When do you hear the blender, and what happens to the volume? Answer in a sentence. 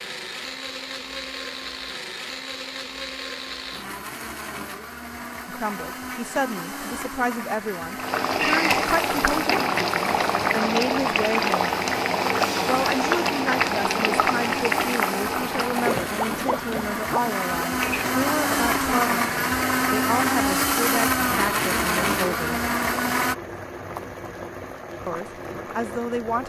You can hear the blender from 0.0 to 23.4 s, getting louder.